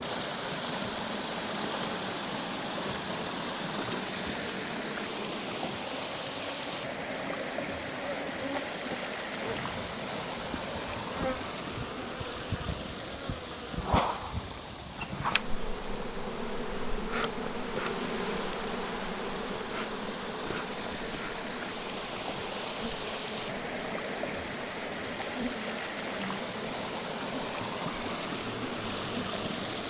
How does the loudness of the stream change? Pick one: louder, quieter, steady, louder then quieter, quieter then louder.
quieter then louder.